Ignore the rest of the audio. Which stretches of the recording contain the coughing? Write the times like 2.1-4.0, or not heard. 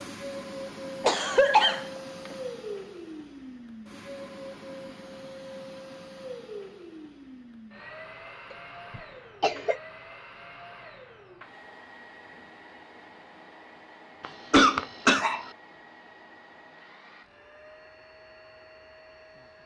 1.0-2.4, 8.5-9.8, 14.2-15.5.